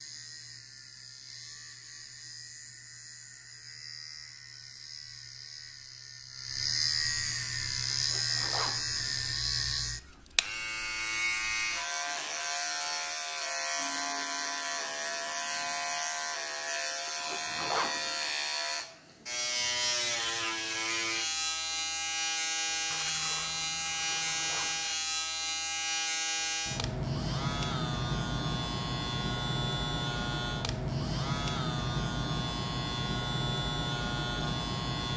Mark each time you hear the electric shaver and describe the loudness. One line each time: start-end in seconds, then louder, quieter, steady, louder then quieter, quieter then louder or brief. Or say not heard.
0.0-35.1 louder.